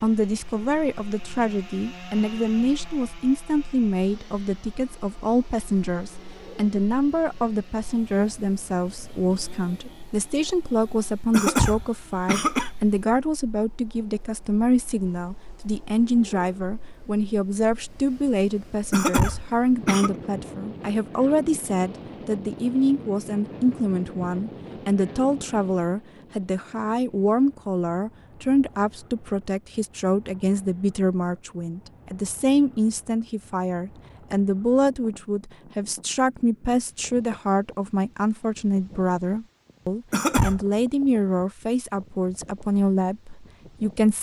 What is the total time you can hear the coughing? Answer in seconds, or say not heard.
3 s.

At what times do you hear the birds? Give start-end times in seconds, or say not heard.
not heard.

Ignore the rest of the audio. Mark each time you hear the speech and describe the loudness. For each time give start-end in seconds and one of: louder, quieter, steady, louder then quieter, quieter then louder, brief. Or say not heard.
0.0-44.1 steady.